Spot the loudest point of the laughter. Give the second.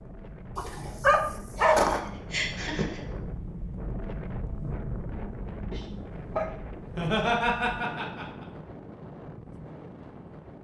7 s.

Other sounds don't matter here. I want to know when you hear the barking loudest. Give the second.
2 s.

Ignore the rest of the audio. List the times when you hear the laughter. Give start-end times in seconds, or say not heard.
1.6-3.0, 6.8-8.4.